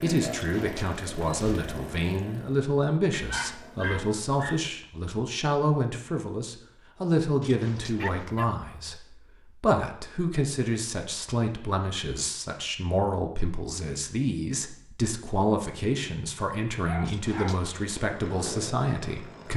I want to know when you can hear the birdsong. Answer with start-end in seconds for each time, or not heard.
not heard.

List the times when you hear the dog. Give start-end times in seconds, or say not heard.
3.1-4.7, 8.0-9.0, 16.8-17.7.